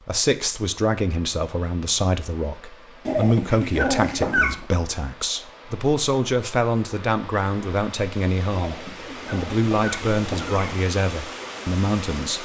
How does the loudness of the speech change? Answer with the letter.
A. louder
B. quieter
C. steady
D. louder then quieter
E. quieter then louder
C.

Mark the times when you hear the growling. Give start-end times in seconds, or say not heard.
3.0-4.7, 8.6-10.7.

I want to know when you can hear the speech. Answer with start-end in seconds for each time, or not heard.
0.1-12.3.